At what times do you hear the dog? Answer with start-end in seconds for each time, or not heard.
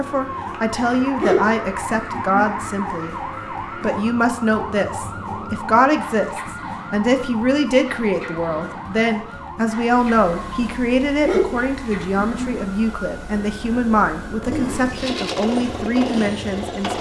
1.2-2.6, 11.2-12.7.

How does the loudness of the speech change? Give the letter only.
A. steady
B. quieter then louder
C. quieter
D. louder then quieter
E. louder
A.